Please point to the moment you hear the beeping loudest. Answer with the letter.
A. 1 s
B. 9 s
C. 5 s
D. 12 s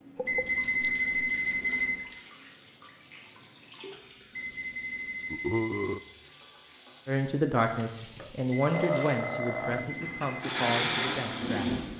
A.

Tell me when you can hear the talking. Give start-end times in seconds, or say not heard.
7.0-11.8.